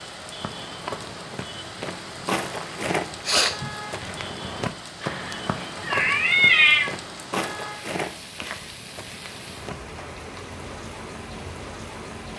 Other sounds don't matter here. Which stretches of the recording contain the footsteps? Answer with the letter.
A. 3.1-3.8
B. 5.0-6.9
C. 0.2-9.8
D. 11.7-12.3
C.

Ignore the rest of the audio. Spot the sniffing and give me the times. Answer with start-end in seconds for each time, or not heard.
3.1-3.8.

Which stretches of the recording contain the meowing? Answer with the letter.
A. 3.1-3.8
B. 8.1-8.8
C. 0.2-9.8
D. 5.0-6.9
D.